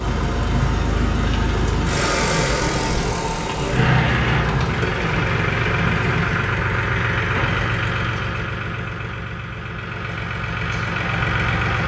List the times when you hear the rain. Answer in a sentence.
You can hear the rain from 0.0 to 6.4 s.